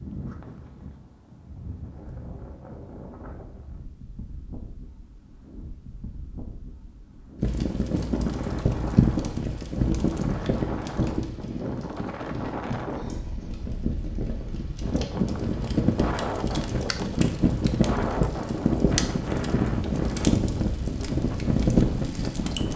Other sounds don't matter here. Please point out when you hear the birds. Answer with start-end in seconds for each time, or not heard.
not heard.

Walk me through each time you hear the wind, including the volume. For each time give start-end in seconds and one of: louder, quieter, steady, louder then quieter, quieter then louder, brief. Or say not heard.
0.0-22.7 louder.